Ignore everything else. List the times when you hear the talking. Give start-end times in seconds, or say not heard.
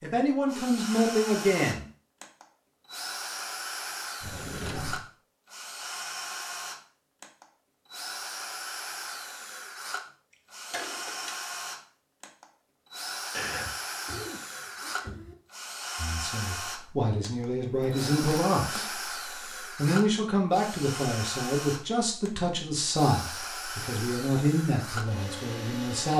0.0-1.9, 15.9-18.9, 19.8-26.1.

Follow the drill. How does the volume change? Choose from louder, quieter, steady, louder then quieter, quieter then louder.
steady.